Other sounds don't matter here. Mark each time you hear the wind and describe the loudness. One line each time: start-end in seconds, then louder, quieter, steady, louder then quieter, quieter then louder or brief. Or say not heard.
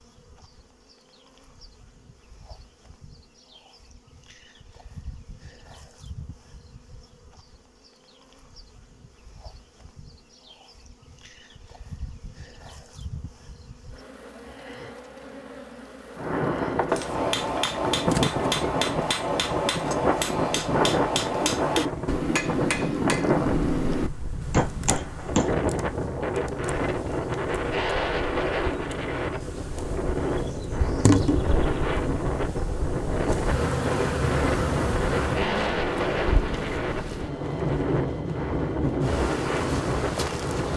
16.1-40.7 steady.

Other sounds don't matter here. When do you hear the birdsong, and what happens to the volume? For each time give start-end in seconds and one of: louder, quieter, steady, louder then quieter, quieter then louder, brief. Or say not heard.
not heard.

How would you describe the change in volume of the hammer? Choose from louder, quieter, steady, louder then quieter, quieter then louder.
steady.